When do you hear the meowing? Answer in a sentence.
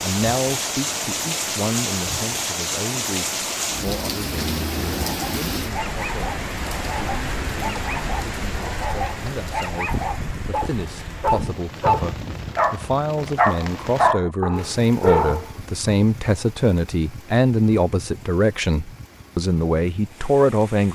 The meowing can't be heard in this clip.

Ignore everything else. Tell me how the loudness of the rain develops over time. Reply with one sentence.
The loudness of the rain goes down.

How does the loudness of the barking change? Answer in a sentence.
The volume of the barking goes up.